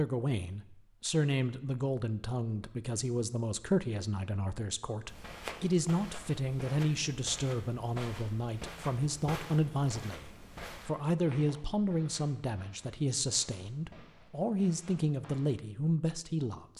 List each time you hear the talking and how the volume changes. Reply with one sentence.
The talking can be heard from 0.0 to 16.7 s, at a steady volume.